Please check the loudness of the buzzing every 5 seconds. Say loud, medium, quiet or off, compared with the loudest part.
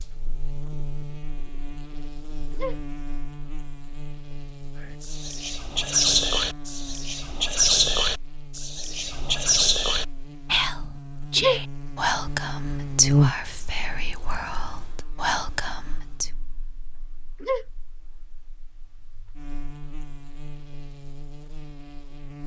quiet, quiet, loud, quiet, quiet.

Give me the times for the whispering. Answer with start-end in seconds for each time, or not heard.
4.8-16.3.